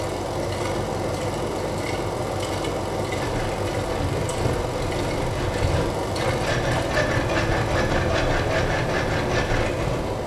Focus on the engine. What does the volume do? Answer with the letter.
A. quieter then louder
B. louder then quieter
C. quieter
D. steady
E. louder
D.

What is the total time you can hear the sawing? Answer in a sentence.
You can hear the sawing for 7 seconds altogether.